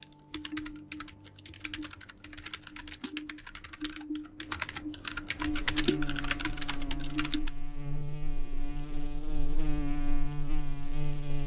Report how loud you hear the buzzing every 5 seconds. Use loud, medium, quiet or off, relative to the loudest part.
off, loud, loud.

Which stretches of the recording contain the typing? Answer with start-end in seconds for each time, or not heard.
0.0-7.5.